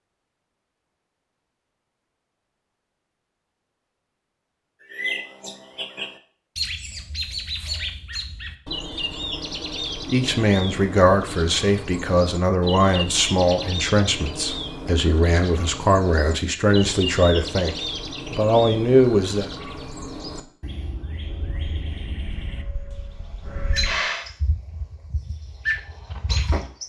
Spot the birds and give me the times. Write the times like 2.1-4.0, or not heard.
4.8-26.8.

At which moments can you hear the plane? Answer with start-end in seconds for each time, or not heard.
21.3-24.2.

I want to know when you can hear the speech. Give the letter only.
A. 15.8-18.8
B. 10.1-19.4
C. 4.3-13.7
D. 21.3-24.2
B.